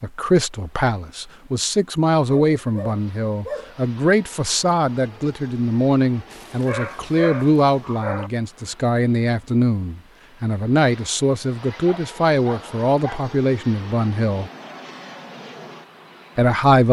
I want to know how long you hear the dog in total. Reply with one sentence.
You can hear the dog for 5 seconds altogether.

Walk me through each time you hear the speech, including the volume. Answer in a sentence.
You can hear the speech from 0.0 to 14.5 s, at a steady volume; and briefly from 16.4 to 16.8 s.